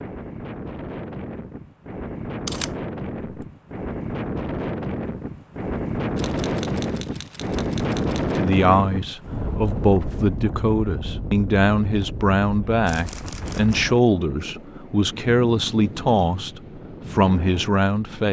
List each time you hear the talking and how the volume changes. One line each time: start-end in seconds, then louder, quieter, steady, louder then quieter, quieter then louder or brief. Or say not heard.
8.3-18.2 steady.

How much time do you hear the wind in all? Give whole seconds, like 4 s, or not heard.
18 s.